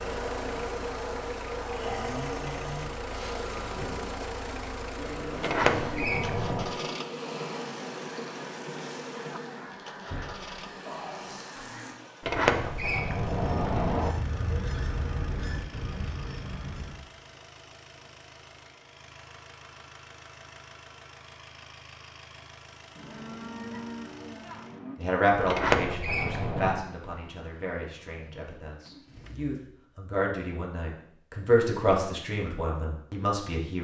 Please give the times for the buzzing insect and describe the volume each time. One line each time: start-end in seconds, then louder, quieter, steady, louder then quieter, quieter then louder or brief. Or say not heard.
0.0-11.4 quieter.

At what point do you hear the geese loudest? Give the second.
15 s.